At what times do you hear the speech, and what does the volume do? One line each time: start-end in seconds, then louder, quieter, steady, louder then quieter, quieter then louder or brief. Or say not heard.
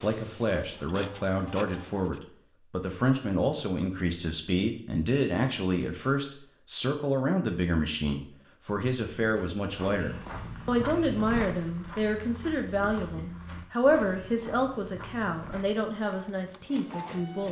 0.0-17.4 steady.